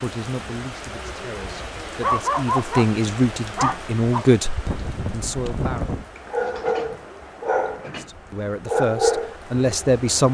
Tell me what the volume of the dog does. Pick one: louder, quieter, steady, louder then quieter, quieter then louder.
quieter then louder.